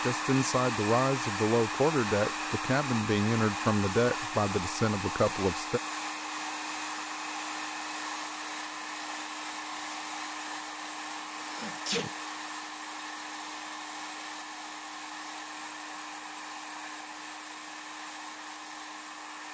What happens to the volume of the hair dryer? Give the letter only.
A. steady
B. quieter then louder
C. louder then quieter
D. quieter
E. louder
D.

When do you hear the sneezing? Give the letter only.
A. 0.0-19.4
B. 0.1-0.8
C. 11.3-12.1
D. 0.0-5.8
C.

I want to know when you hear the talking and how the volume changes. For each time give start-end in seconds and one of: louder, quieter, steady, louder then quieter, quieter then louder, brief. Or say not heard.
0.0-5.8 steady.